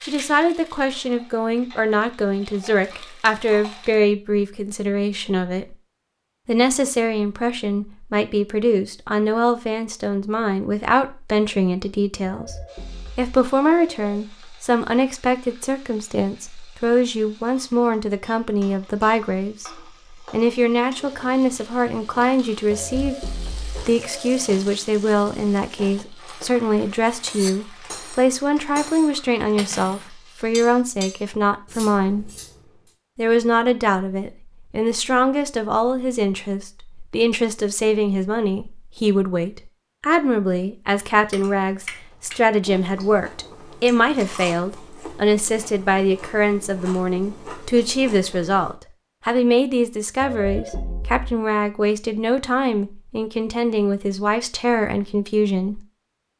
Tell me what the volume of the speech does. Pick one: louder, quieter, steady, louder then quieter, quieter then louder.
steady.